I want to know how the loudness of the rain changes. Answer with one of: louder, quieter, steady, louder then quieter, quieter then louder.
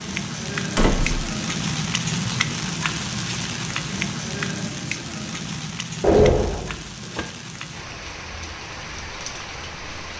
quieter.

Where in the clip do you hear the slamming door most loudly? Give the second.
6 s.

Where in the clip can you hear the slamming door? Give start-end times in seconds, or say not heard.
0.8-1.3, 6.0-7.2.